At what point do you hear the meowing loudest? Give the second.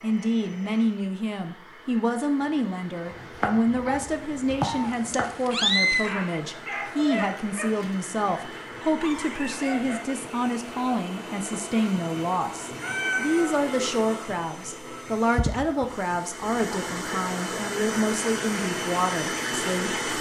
6 s.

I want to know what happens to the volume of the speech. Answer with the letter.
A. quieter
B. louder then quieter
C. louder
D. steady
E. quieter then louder
D.